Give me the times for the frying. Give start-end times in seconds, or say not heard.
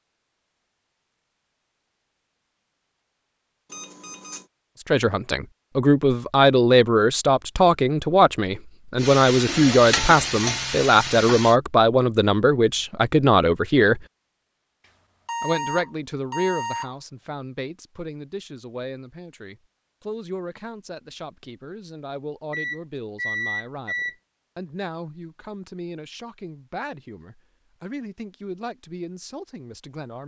8.9-11.6.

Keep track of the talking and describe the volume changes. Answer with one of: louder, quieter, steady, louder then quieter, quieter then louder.
quieter.